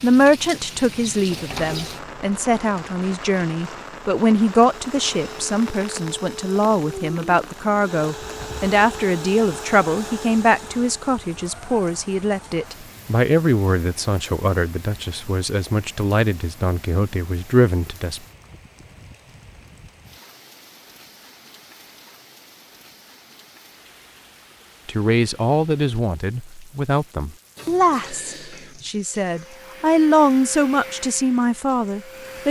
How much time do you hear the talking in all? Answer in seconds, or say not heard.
26 s.